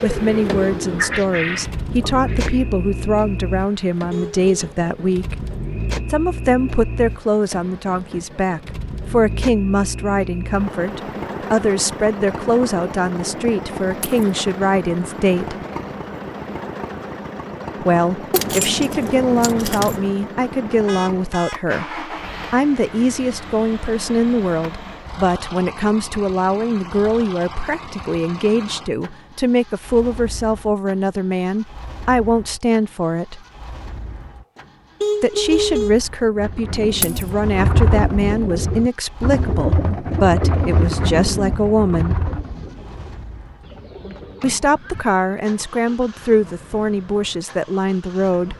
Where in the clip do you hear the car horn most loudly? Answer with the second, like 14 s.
36 s.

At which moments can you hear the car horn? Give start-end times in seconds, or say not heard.
4.1-4.5, 20.9-21.6, 35.0-36.0.